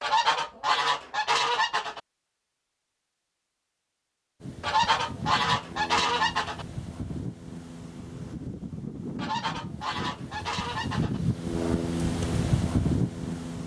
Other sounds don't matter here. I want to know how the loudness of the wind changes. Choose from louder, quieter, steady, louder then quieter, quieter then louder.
louder.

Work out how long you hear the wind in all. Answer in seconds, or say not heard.
9 s.